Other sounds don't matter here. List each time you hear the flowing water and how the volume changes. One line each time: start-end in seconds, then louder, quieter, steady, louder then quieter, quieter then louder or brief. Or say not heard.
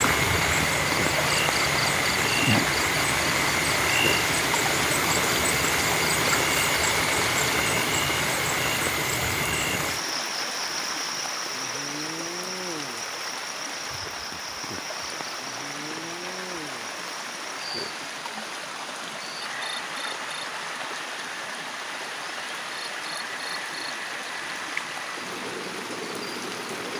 0.0-26.9 quieter.